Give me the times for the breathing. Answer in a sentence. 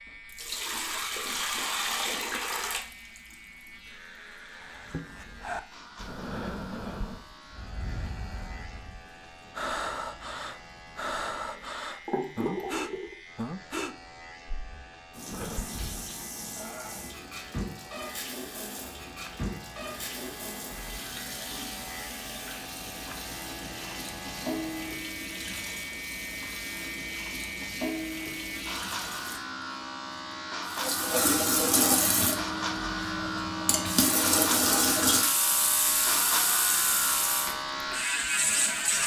The breathing can be heard from 4.5 to 16.1 s.